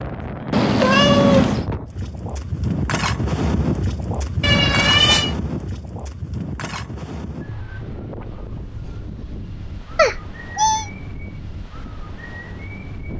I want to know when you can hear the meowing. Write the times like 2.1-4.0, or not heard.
0.5-1.6, 4.4-5.3, 9.9-10.8.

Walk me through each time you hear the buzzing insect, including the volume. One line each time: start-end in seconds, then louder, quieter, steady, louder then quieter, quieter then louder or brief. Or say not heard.
not heard.